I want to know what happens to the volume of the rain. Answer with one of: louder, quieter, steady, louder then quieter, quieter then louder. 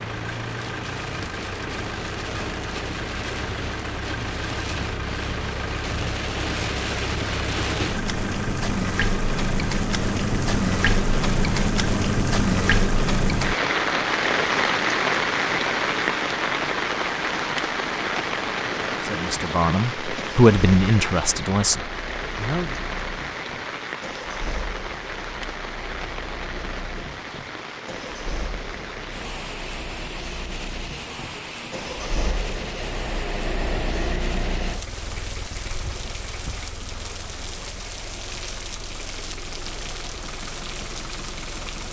louder then quieter.